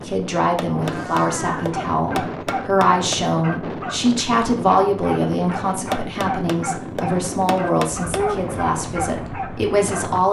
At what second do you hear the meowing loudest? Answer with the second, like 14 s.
8 s.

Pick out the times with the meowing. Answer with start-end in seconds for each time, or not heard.
0.6-1.8, 7.5-8.4.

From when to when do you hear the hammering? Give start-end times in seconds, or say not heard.
0.6-3.2, 5.9-8.2.